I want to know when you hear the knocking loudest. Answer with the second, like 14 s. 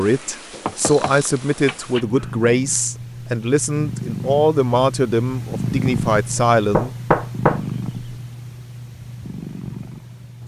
7 s.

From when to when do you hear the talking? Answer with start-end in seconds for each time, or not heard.
0.0-6.9.